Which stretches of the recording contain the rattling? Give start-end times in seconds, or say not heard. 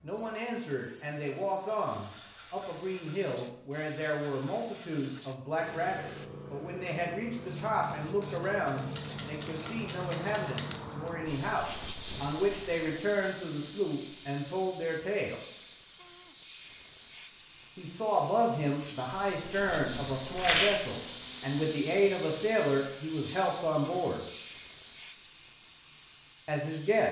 8.8-10.8, 20.4-20.9.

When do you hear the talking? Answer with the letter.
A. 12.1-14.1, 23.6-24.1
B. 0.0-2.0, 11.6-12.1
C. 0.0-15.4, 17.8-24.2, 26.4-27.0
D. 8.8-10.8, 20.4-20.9
C.